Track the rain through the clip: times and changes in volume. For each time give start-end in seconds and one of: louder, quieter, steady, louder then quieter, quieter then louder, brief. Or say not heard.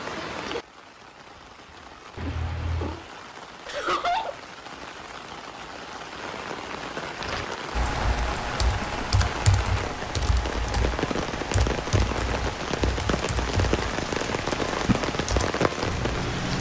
0.0-16.5 louder.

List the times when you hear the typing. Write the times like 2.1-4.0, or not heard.
7.2-16.5.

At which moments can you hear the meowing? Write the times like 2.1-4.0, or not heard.
2.1-3.0.